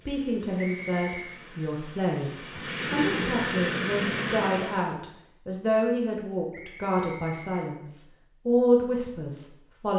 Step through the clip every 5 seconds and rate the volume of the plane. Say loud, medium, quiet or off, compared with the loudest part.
loud, off.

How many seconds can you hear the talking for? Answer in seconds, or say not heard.
10 s.